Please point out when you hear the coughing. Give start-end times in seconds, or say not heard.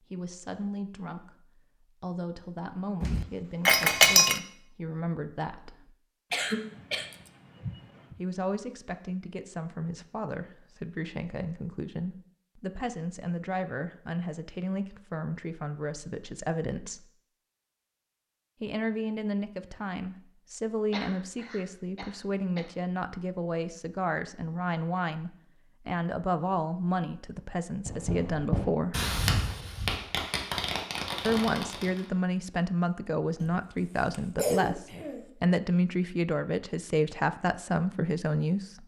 6.3-8.2, 20.9-22.6, 33.4-35.2.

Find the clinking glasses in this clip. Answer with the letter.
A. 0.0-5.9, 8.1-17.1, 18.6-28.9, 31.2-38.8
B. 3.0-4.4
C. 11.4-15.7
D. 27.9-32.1
B.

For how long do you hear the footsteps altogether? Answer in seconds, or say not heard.
not heard.